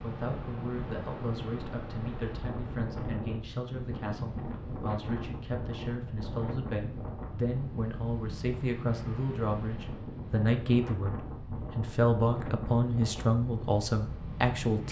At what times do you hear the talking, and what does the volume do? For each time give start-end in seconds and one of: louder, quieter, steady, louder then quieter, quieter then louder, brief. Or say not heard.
0.0-14.8 louder.